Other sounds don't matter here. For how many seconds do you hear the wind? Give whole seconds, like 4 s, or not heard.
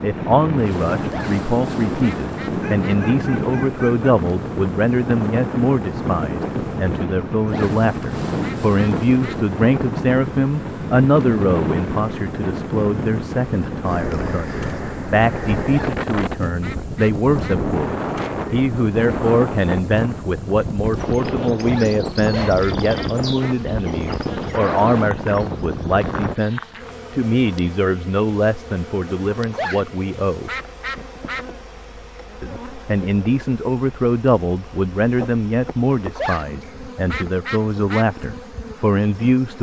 26 s.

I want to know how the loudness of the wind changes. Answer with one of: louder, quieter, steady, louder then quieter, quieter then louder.
steady.